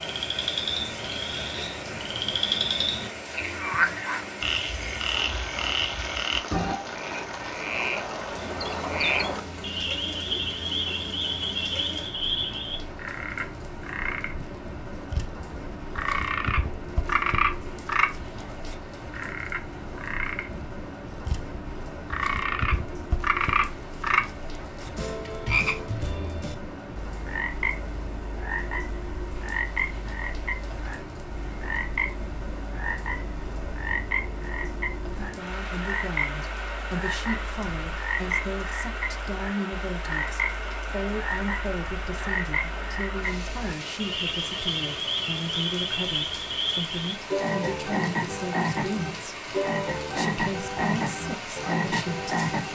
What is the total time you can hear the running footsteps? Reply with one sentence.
The running footsteps can't be heard in this clip.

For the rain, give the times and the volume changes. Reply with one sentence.
You can hear the rain from 0.0 to 52.6 s, at a steady volume.